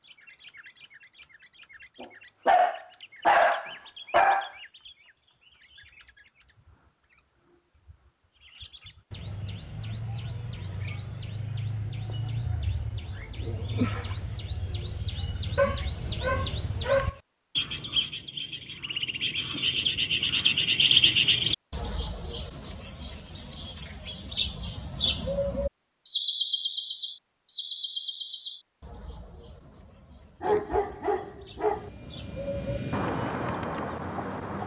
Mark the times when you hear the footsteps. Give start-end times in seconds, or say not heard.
not heard.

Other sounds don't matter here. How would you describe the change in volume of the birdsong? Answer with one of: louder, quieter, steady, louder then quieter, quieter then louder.
louder then quieter.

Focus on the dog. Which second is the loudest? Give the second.
3 s.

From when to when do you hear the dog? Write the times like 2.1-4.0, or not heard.
2.0-4.5, 15.6-17.1, 30.4-31.9.